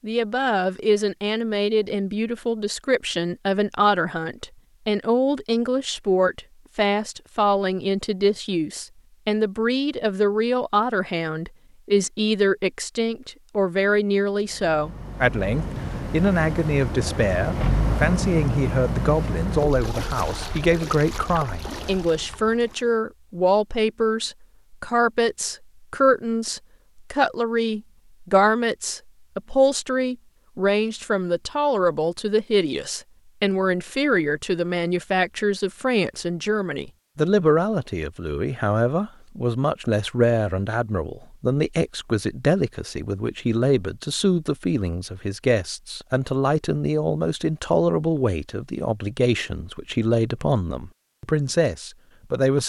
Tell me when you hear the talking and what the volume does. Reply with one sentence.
The talking can be heard from 0.0 to 52.6 s, at a steady volume.